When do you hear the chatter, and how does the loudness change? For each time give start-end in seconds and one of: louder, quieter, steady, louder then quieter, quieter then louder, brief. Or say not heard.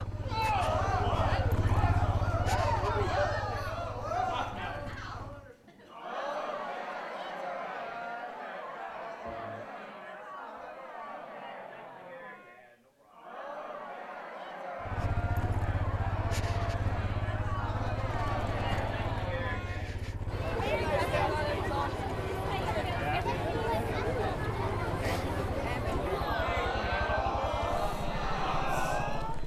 0.1-29.4 quieter then louder.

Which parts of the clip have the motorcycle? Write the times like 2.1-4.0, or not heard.
0.0-5.5, 14.8-29.4.